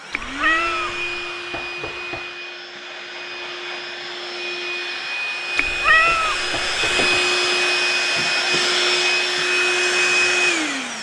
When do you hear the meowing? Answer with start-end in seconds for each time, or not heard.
0.1-1.1, 5.5-7.2.